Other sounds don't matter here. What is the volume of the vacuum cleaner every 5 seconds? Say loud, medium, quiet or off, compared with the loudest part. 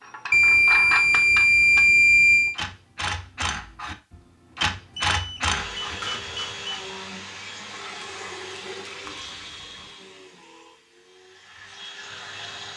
off, loud, medium.